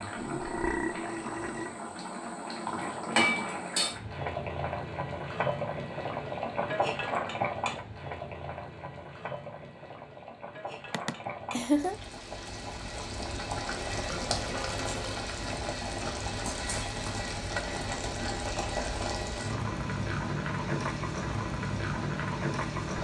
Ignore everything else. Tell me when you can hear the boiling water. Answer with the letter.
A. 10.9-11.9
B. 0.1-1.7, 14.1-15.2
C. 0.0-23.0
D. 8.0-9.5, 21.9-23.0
C.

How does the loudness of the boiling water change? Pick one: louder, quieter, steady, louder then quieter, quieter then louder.
quieter then louder.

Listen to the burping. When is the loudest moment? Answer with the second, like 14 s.
1 s.